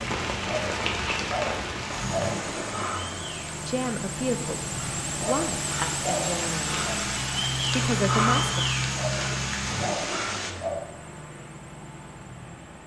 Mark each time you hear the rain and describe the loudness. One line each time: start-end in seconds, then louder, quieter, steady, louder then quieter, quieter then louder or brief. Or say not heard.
0.0-10.5 quieter then louder.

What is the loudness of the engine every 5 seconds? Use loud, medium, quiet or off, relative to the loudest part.
loud, loud, medium.